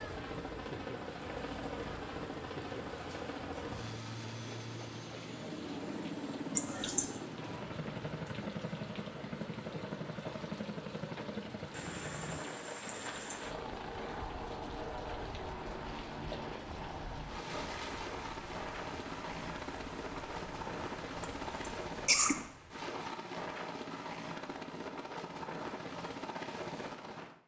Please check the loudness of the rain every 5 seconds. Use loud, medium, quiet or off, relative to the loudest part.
loud, loud, loud, loud, loud, off.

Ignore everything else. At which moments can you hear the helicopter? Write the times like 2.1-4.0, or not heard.
0.0-27.4.